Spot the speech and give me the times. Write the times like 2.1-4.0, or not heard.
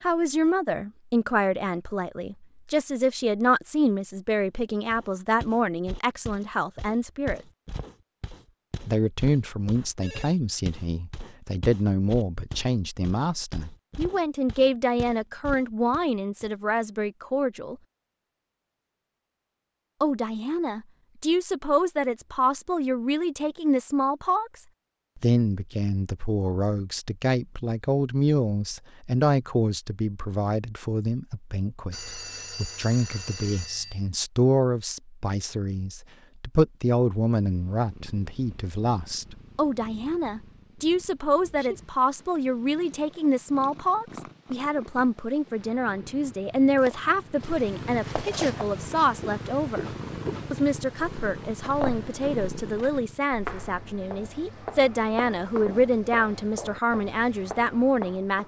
0.0-7.4, 8.8-17.8, 20.0-49.9, 50.5-58.4.